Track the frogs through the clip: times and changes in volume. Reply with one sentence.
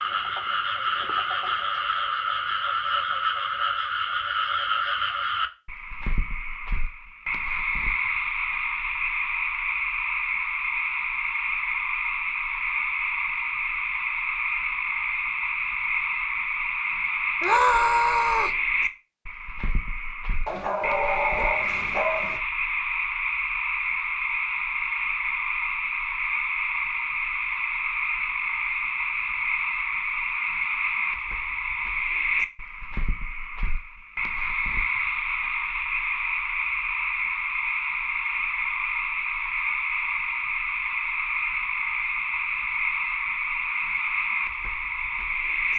The frogs can be heard from 0.0 to 45.7 s, at a steady volume.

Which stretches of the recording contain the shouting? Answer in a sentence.
You can hear the shouting from 17.4 to 18.6 s.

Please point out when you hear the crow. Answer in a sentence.
You can't hear the crow here.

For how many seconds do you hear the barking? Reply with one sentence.
You can hear the barking for 2 seconds altogether.